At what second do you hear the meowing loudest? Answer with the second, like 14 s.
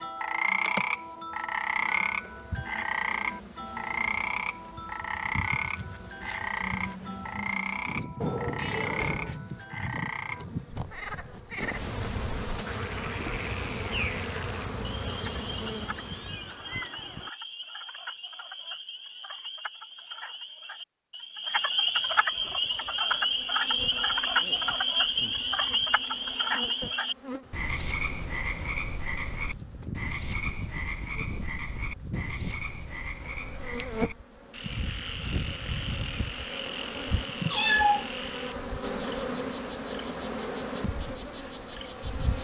38 s.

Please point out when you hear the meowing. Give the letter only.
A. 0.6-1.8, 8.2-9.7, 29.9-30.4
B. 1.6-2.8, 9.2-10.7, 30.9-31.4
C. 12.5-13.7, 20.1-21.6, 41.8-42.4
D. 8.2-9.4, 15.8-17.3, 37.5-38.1
D.